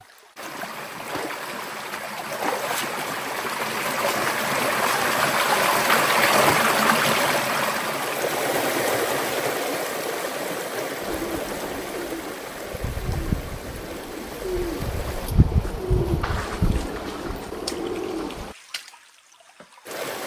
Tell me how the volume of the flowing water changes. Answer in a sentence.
The volume of the flowing water goes up, then down.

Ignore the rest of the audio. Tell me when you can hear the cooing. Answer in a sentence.
You can hear the cooing from 11.0 to 18.6 s.